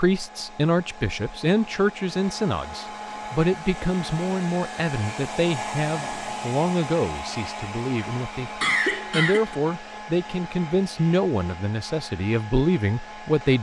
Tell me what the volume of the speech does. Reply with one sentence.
The volume of the speech stays about the same.